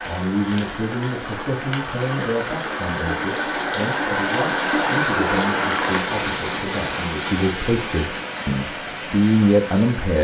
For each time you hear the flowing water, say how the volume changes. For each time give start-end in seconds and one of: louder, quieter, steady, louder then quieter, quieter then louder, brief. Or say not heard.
0.0-10.1 louder then quieter.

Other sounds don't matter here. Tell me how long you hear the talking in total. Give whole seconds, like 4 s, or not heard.
10 s.